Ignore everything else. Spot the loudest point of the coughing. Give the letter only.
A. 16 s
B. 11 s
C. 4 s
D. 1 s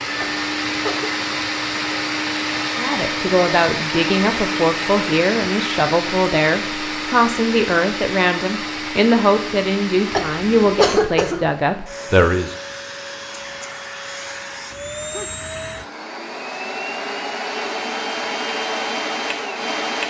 B.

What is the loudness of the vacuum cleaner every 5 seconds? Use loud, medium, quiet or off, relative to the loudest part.
loud, loud, medium, loud.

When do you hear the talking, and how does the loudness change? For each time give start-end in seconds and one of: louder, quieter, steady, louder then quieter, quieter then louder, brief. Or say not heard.
2.8-12.6 steady.